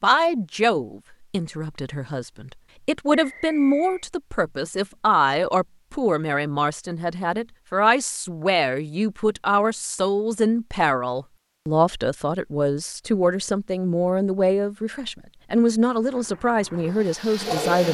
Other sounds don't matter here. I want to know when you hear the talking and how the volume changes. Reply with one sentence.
You can hear the talking from 0.0 to 17.8 s, at a steady volume.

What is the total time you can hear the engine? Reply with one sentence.
The engine can be heard for 2 seconds in total.